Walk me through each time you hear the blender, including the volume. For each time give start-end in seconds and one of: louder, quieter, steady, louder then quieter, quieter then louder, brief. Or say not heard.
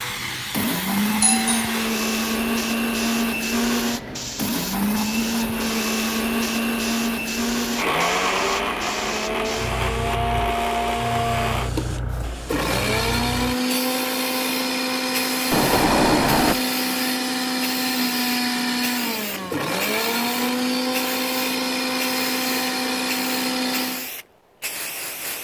0.0-24.1 steady.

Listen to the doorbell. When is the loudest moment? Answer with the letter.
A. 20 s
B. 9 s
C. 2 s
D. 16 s
D.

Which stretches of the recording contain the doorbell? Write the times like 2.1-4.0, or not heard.
1.2-1.8, 15.5-16.6.